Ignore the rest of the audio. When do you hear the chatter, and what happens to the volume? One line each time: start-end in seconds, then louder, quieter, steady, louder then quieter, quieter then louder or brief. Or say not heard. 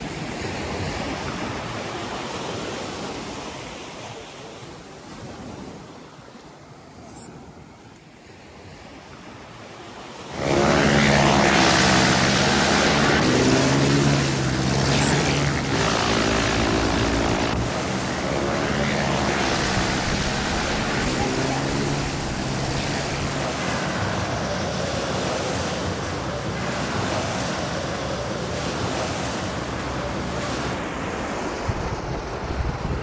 not heard.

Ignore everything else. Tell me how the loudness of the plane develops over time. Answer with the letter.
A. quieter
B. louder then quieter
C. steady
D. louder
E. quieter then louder
A.